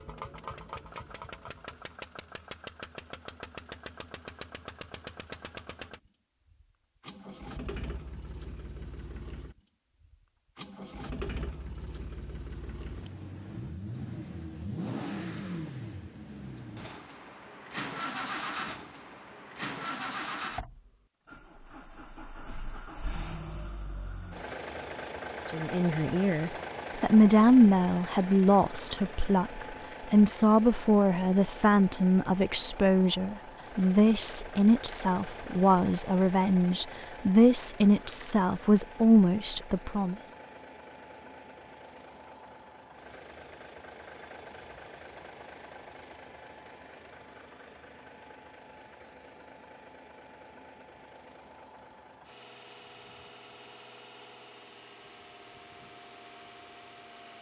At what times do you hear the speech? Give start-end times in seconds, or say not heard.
25.4-40.1.